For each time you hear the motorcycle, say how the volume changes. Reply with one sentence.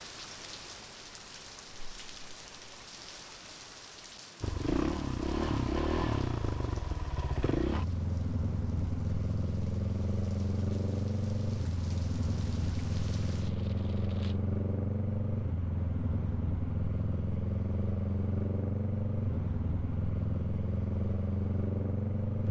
The motorcycle can be heard from 4.4 to 22.4 s, at a steady volume.